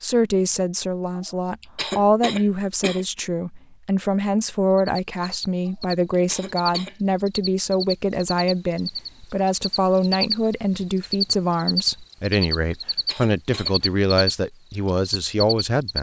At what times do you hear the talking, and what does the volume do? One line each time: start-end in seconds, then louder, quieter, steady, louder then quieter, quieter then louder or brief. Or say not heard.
0.0-15.9 steady.